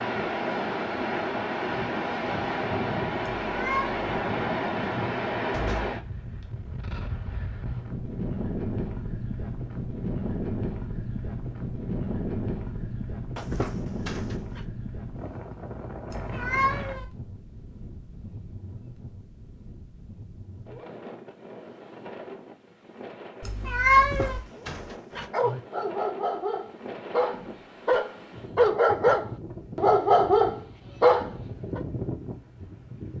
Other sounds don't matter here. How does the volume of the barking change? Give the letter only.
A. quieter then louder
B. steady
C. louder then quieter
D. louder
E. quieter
D.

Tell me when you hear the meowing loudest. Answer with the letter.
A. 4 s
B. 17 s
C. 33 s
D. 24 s
D.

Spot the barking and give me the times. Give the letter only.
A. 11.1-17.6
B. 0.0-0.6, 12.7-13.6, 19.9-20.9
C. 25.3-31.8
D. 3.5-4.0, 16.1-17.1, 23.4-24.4
C.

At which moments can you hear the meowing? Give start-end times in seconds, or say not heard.
3.5-4.0, 16.1-17.1, 23.4-24.4.